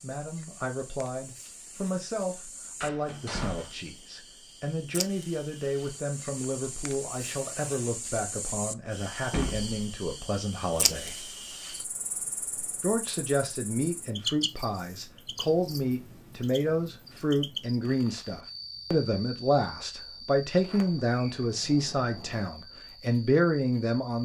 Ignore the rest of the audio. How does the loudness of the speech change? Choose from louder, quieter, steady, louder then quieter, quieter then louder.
louder.